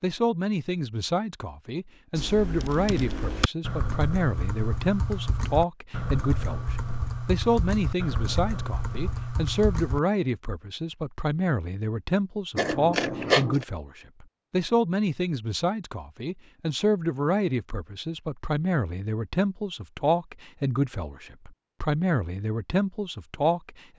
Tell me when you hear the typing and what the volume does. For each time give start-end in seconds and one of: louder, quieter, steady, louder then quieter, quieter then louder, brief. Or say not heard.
2.1-10.0 steady.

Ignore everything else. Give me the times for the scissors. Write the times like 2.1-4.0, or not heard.
12.6-13.7.